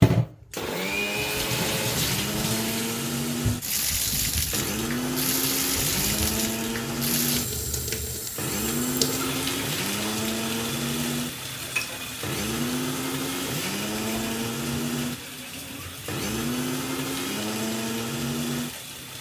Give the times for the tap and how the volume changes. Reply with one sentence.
You can hear the tap from 0.0 to 19.1 s, getting quieter.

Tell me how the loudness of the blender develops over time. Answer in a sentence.
The volume of the blender stays about the same.